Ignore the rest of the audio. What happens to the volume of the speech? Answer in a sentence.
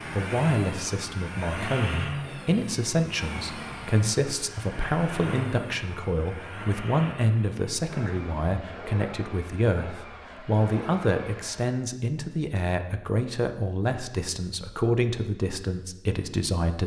The volume of the speech stays about the same.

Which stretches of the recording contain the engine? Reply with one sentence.
The engine can be heard from 0.0 to 11.7 s.